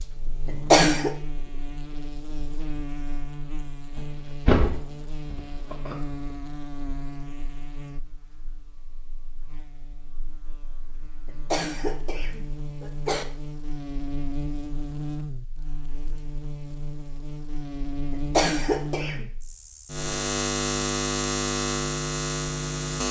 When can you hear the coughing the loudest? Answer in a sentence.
The volume of the coughing peaks at 1 second.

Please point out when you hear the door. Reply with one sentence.
You can hear the door from 4.0 to 6.0 s.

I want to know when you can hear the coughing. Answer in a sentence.
The coughing can be heard from 0.5 to 1.1 s, from 11.2 to 13.2 s and from 18.1 to 19.2 s.